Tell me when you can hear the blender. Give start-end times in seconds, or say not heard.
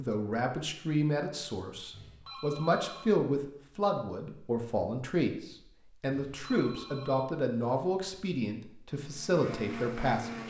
9.0-10.4.